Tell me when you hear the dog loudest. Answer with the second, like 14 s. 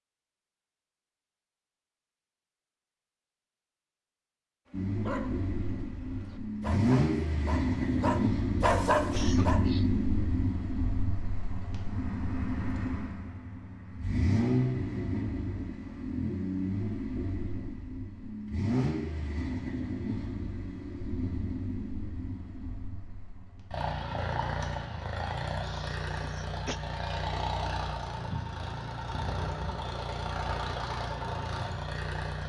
9 s.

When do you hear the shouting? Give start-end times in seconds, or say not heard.
not heard.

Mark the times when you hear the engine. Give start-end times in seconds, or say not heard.
4.7-32.4.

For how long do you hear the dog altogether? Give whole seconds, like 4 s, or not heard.
5 s.